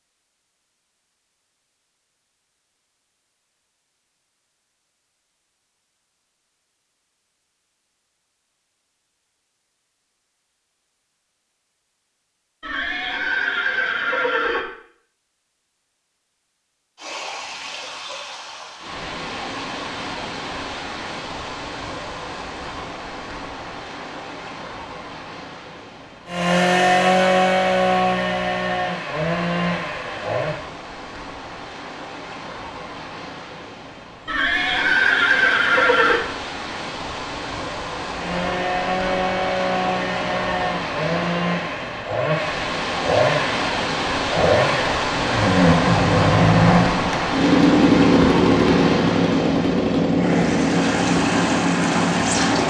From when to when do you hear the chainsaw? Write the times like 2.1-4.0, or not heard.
26.2-30.6, 38.1-52.6.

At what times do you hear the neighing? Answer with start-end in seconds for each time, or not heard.
12.6-14.6, 34.2-36.2.